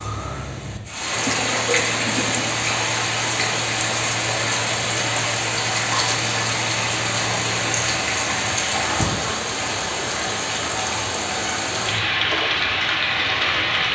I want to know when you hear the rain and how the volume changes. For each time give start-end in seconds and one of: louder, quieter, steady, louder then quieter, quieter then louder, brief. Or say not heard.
0.0-13.9 steady.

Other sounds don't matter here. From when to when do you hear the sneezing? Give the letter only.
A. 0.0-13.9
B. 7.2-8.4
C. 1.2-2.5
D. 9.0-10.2
C.